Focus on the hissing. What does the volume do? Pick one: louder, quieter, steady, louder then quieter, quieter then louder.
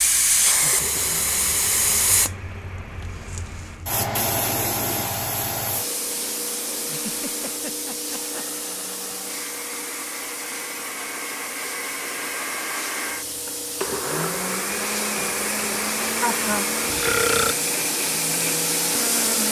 quieter then louder.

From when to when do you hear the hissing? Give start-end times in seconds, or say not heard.
0.0-19.4.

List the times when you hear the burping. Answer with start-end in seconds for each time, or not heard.
16.9-17.6.